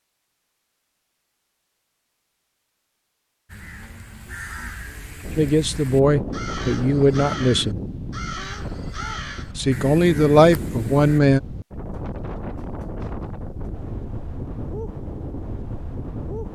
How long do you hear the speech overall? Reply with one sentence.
The speech can be heard for 4 seconds in total.